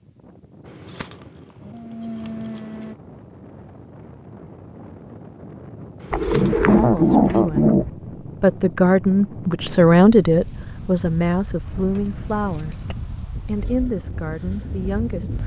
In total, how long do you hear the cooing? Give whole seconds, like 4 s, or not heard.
2 s.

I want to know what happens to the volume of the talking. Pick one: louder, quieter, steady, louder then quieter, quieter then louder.
louder then quieter.